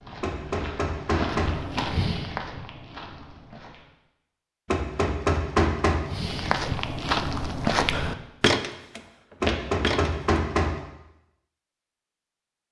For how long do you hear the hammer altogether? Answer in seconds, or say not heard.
4 s.